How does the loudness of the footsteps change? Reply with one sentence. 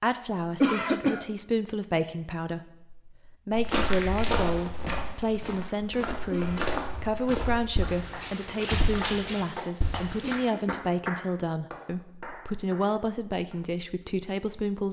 The volume of the footsteps goes down, then up.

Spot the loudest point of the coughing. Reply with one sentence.
The loudest moment of the coughing is at 1 second.